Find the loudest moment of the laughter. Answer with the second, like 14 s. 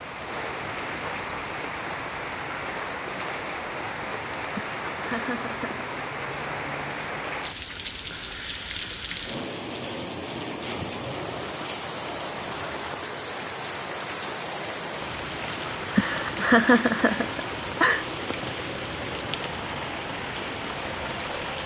17 s.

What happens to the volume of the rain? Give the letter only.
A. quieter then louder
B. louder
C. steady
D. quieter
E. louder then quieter
C.